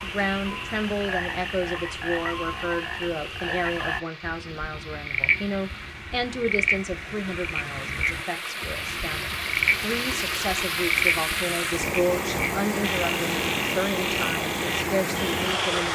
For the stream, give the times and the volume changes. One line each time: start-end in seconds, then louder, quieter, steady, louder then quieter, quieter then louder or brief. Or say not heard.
0.0-15.9 louder.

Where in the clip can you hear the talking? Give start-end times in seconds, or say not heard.
0.0-15.9.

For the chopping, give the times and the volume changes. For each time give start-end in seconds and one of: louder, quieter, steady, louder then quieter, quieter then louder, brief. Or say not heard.
not heard.